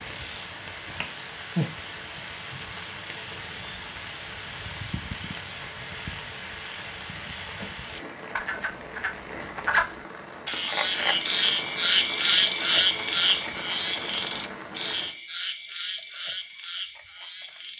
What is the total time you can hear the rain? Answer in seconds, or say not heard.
15 s.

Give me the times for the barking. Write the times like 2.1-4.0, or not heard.
not heard.